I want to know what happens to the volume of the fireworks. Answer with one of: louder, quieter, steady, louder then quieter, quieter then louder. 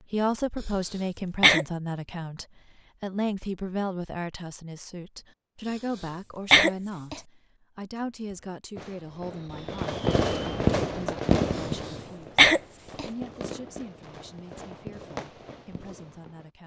louder then quieter.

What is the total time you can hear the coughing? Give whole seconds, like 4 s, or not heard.
4 s.